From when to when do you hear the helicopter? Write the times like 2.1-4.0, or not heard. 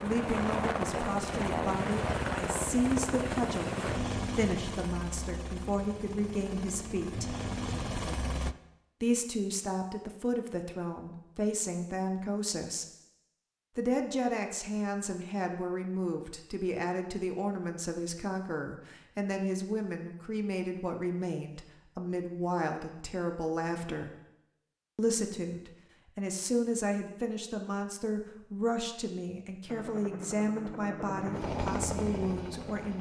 0.0-8.6, 29.6-32.9.